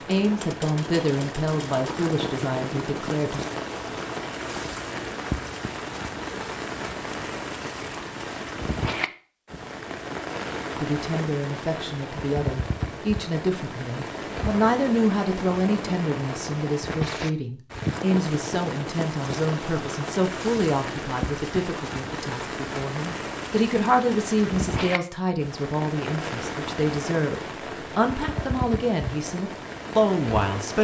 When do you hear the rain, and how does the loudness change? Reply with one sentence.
You can hear the rain from 0.0 to 30.7 s, at a steady volume.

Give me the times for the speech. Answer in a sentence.
The speech can be heard from 0.1 to 3.4 s and from 10.8 to 30.7 s.